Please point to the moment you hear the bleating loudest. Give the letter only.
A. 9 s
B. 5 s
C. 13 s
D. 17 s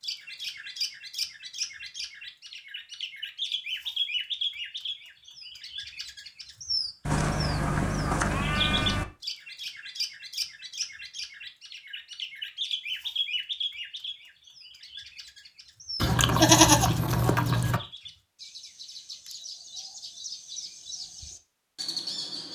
D.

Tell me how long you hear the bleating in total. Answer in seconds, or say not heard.
4 s.